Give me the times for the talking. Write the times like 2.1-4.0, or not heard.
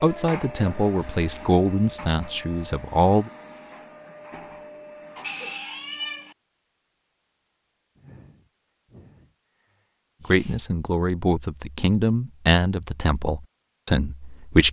0.0-3.3, 10.2-14.6.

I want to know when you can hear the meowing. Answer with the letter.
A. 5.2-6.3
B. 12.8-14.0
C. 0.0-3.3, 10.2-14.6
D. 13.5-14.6
A.